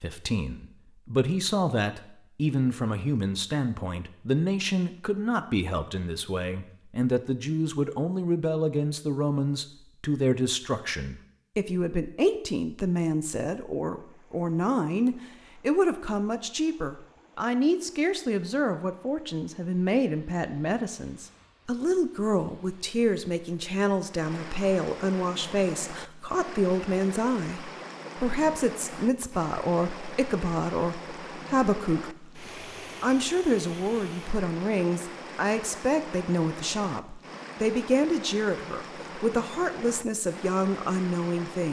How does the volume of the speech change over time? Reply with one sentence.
The volume of the speech stays about the same.